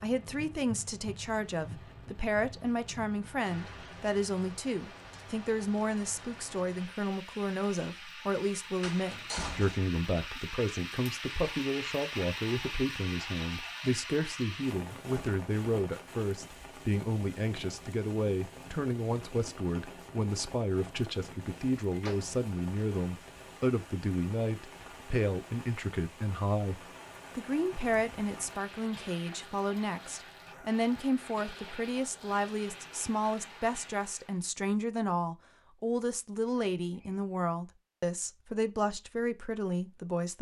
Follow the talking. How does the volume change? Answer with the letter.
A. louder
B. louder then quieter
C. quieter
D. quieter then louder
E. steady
E.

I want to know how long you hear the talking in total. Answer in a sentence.
The talking can be heard for 40 seconds in total.